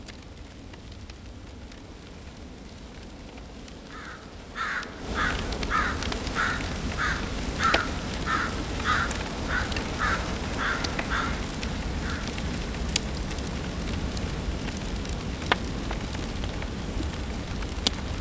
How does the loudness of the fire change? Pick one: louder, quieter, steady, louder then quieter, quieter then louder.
louder.